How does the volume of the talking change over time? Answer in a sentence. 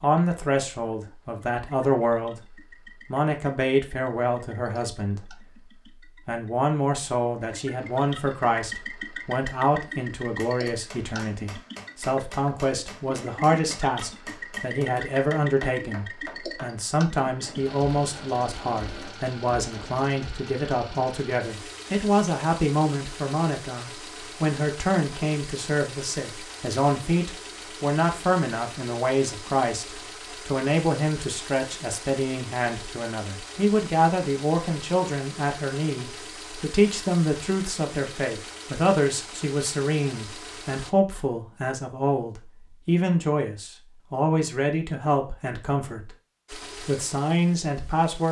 The loudness of the talking stays about the same.